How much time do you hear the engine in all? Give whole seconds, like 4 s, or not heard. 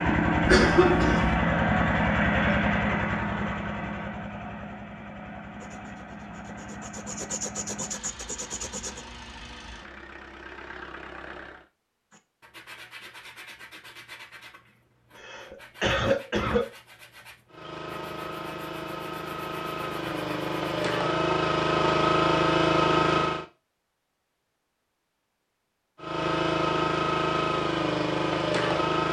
21 s.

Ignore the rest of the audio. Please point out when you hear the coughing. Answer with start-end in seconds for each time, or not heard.
0.5-1.4, 15.2-16.6.